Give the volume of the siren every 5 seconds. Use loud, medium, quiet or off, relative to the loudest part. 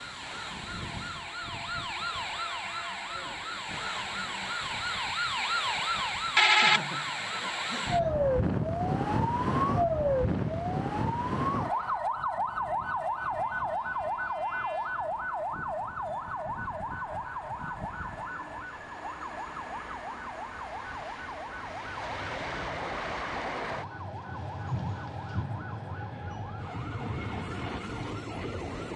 medium, loud, loud, medium, quiet, quiet.